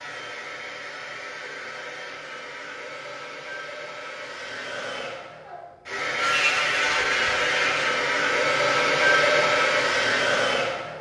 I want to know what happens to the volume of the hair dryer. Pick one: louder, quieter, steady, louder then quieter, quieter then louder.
louder.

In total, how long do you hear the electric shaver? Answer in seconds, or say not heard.
2 s.